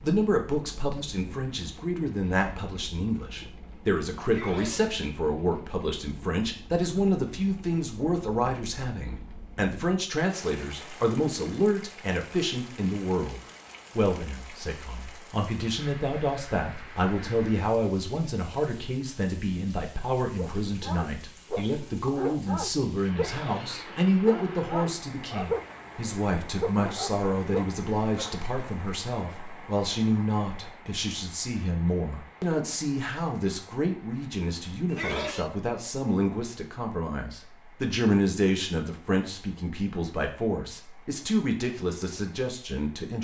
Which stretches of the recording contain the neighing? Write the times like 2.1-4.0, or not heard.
4.2-5.0, 23.1-24.0, 34.9-35.5.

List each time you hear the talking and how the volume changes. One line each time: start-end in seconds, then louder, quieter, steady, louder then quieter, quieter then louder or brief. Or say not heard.
0.0-43.1 steady.